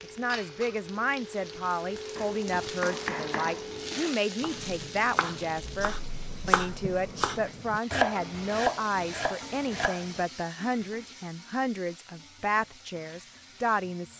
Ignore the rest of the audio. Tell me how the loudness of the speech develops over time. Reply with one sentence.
The loudness of the speech stays about the same.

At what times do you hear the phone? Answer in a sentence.
The phone can't be heard in this clip.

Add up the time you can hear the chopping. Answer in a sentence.
You can hear the chopping for 8 seconds altogether.